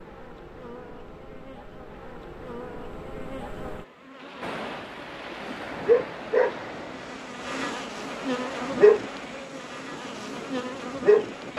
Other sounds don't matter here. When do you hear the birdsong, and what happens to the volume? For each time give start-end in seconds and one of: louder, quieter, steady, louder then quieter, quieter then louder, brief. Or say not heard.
not heard.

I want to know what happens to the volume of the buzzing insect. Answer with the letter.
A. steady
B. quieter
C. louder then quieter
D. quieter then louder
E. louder
C.